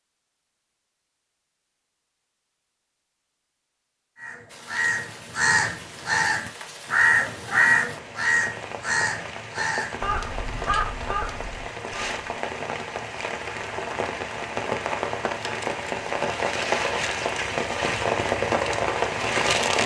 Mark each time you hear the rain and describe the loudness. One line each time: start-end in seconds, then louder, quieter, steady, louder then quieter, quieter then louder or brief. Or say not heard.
4.5-19.8 louder.